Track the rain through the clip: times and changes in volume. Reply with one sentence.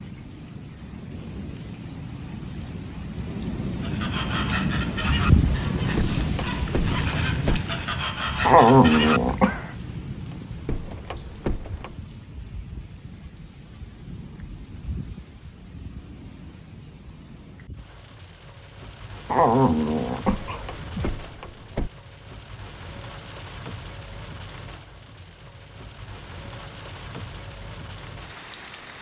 You can hear the rain from 0.0 to 28.9 s, getting quieter.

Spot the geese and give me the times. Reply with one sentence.
The geese can be heard from 3.8 to 9.8 s.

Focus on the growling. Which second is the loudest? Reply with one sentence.
The volume of the growling peaks at 9 seconds.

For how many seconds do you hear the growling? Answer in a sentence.
The growling can be heard for 3 seconds in total.